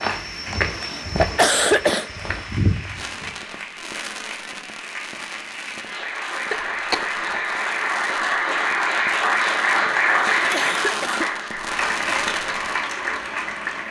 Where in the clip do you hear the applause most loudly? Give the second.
10 s.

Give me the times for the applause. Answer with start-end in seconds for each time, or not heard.
0.0-13.8.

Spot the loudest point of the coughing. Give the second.
2 s.